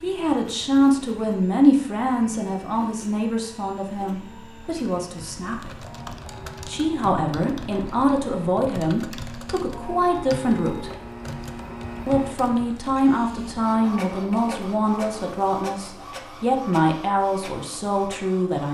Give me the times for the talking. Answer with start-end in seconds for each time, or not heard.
0.0-5.8, 6.7-10.9, 12.1-18.6.